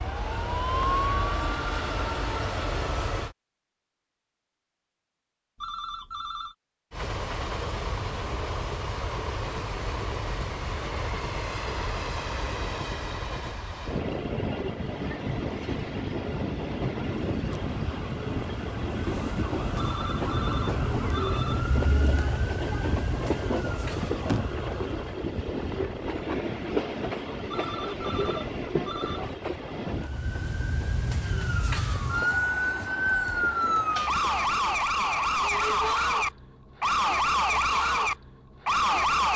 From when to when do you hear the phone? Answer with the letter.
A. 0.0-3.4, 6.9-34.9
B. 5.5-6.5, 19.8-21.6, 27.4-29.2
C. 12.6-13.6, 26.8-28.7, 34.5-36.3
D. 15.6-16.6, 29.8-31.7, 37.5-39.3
B.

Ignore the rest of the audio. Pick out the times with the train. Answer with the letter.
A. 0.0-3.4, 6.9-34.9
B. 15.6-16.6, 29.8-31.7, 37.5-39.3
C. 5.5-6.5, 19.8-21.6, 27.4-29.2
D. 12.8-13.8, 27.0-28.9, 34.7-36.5
A.